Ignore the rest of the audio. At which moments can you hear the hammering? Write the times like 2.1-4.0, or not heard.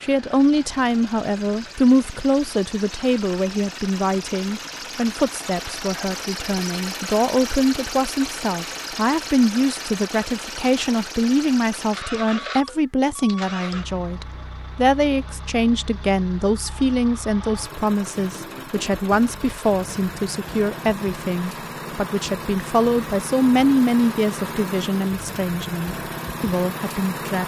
not heard.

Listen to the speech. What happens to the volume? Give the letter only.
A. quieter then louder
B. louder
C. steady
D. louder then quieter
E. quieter
C.